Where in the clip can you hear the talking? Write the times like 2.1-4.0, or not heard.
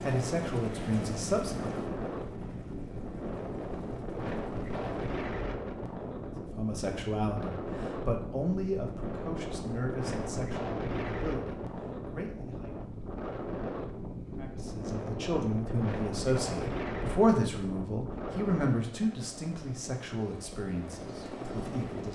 0.0-1.8, 6.4-12.8, 14.3-22.0.